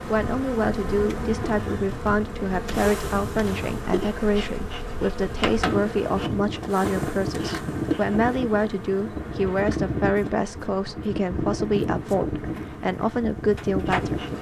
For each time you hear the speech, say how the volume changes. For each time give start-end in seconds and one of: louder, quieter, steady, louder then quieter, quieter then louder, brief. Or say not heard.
0.1-14.2 steady.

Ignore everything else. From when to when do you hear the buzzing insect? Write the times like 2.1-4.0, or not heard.
0.0-14.3.